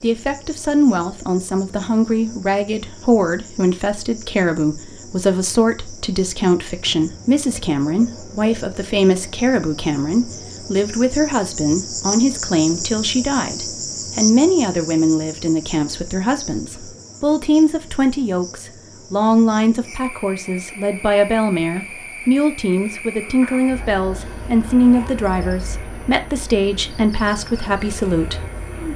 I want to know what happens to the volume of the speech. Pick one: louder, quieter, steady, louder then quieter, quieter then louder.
steady.